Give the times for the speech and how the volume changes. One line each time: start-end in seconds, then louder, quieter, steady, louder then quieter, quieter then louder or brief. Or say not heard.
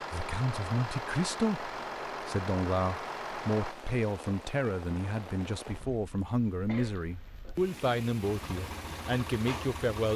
0.1-10.1 steady.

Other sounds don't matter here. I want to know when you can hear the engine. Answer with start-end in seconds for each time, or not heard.
0.0-3.8, 8.2-10.1.